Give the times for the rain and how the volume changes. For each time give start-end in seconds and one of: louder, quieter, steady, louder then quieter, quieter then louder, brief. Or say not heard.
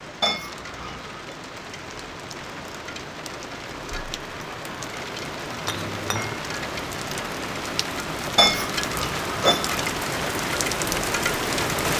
0.0-11.9 louder.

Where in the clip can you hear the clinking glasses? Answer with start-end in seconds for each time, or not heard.
0.2-1.4, 5.7-6.4, 8.3-9.8.